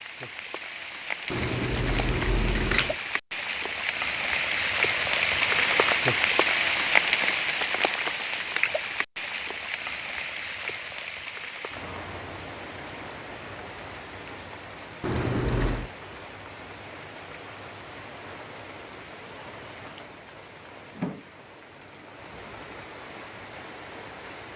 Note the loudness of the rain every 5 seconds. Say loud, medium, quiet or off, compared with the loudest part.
medium, loud, quiet, quiet, quiet.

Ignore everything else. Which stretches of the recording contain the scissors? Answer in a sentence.
You can hear the scissors from 1.3 to 3.0 s and from 15.0 to 15.9 s.